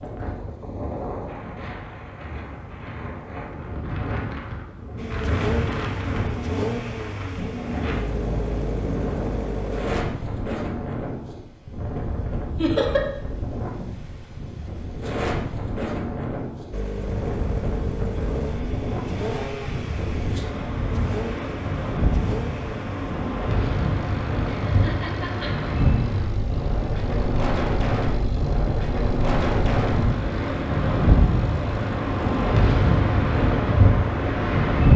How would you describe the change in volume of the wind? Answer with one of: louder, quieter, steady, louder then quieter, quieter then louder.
louder.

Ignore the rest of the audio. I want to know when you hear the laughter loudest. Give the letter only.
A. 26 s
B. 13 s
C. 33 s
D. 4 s
B.